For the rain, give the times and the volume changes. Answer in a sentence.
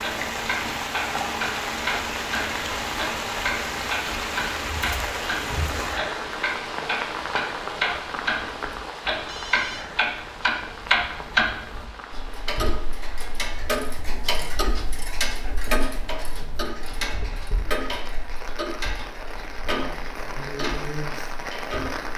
You can hear the rain from 0.0 to 22.1 s, getting quieter then louder.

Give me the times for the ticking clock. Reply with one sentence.
You can hear the ticking clock from 0.0 to 22.1 s.